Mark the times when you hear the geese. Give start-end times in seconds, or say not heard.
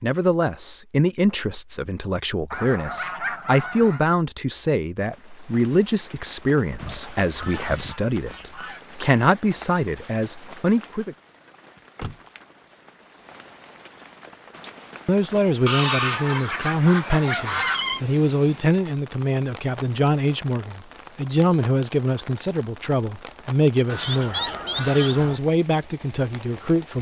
2.5-4.0, 6.8-8.8, 15.7-18.0, 23.9-25.4.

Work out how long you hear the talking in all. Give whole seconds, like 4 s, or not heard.
23 s.